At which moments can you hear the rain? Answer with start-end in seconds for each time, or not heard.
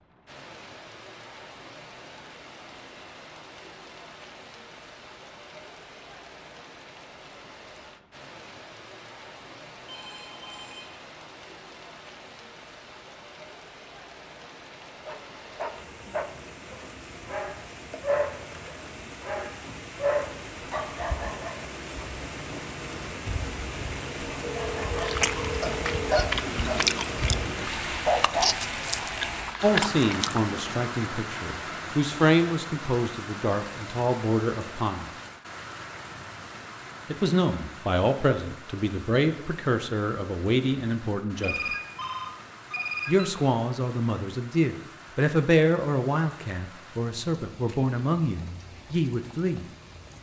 0.0-50.1.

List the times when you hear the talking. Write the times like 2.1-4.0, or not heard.
29.6-35.1, 37.1-41.8, 43.0-49.6.